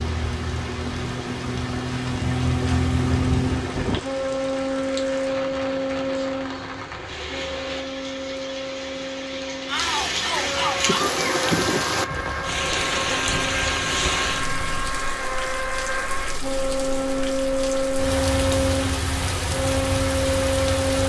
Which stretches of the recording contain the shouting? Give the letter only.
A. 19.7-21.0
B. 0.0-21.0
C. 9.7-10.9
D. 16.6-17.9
C.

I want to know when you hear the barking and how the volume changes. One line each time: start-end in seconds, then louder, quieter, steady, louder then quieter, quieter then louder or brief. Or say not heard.
not heard.